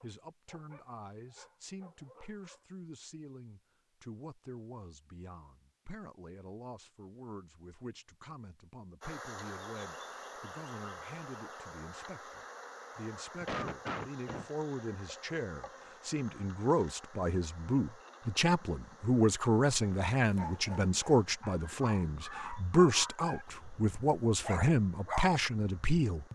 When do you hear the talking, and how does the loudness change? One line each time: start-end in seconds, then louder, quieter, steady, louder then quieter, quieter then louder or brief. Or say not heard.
0.0-26.3 louder.